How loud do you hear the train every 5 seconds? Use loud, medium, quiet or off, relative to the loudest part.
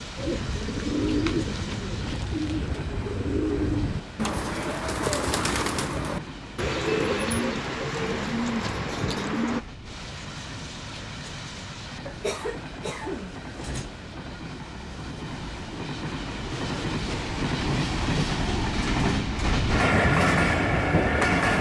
quiet, quiet, quiet, medium, loud.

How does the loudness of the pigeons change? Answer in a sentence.
The volume of the pigeons stays about the same.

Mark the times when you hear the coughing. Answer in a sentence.
You can hear the coughing from 12.1 to 13.9 s.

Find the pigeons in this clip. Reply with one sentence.
You can hear the pigeons from 0.1 to 9.7 s.